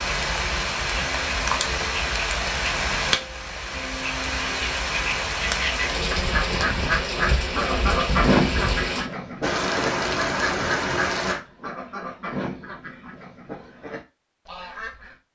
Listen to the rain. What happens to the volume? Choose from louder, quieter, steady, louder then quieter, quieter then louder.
steady.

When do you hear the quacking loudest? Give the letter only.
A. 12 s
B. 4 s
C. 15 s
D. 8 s
D.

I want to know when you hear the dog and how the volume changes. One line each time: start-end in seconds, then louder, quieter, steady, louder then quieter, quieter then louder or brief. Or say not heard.
not heard.